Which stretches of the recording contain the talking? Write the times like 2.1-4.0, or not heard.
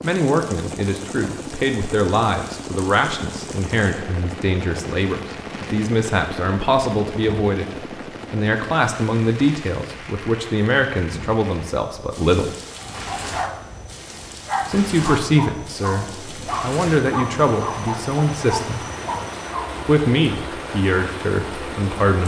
0.0-7.7, 8.3-12.5, 14.7-18.8, 19.9-22.2.